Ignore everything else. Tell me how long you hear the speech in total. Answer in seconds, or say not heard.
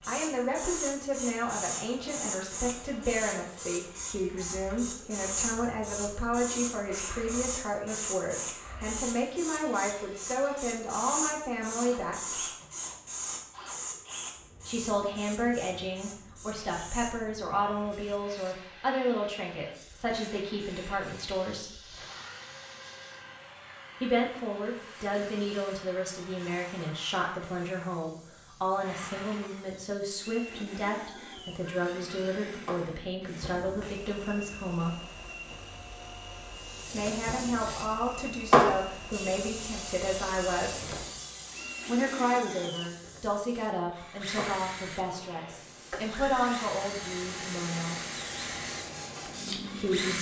41 s.